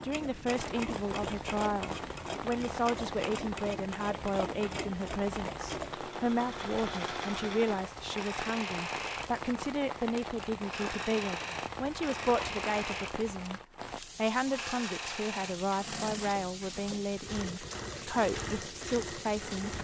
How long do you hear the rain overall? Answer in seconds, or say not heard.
20 s.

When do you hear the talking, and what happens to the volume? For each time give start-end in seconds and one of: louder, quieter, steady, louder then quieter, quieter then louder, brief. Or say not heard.
0.0-19.7 steady.